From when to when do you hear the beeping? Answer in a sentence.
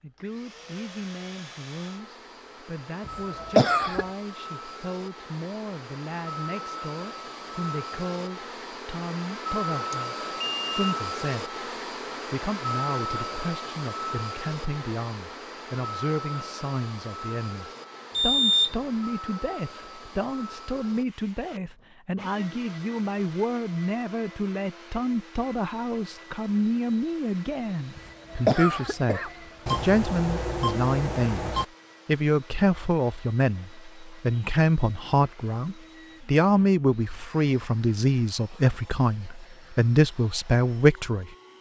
The beeping can be heard from 9.9 to 10.8 s, from 18.1 to 18.8 s and from 29.6 to 31.6 s.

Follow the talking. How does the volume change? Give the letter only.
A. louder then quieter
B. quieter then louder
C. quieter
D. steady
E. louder
E.